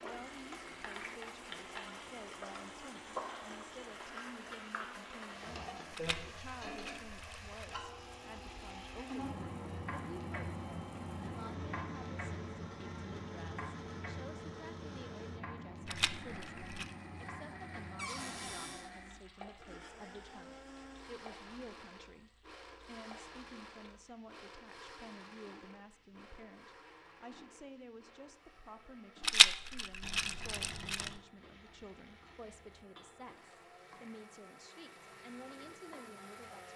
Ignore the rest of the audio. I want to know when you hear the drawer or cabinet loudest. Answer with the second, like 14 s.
18 s.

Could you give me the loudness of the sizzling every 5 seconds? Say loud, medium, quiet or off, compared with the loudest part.
loud, loud, loud, medium, quiet, quiet, quiet, quiet.